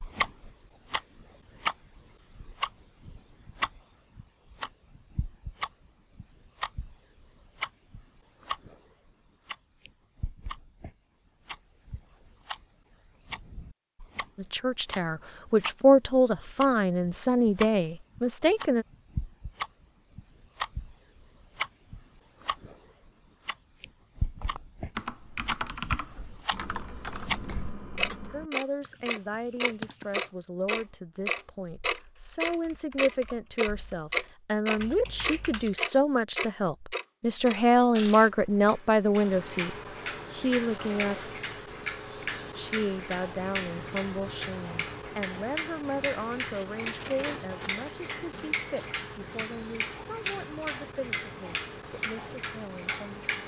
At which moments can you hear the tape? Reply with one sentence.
You can hear the tape from 46.5 to 48.9 s.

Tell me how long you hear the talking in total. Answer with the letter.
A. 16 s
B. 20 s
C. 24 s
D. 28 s
D.